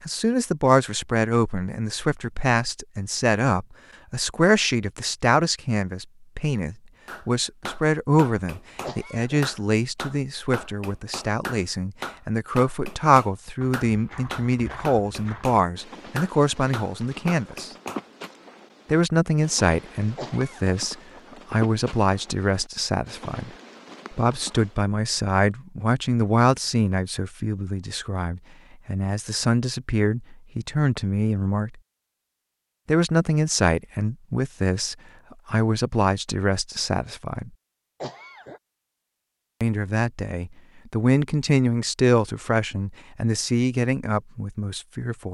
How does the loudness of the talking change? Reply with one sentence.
The volume of the talking stays about the same.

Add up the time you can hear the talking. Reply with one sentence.
You can hear the talking for 40 seconds altogether.